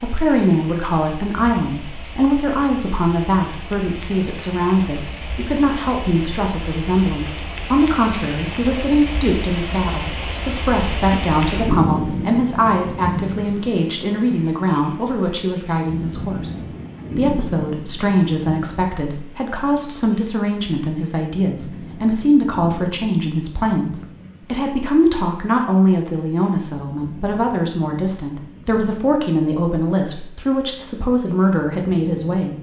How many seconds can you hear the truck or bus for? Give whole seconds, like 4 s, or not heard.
not heard.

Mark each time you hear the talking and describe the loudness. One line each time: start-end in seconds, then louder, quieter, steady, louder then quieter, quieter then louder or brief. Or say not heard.
0.0-16.6 steady
17.1-32.5 steady.